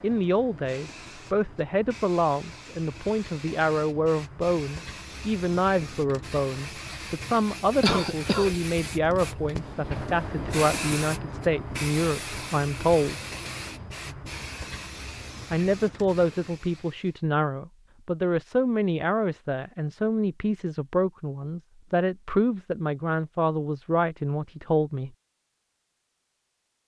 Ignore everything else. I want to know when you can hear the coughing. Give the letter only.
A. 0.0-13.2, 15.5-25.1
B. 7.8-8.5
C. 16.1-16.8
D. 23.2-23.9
B.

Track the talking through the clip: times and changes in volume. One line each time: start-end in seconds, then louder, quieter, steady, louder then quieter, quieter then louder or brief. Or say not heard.
0.0-13.2 steady
15.5-25.1 steady.